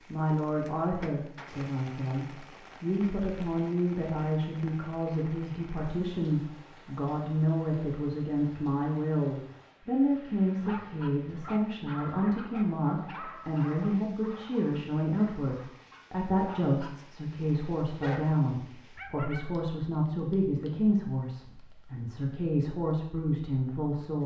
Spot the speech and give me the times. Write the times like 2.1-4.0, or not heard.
0.1-24.2.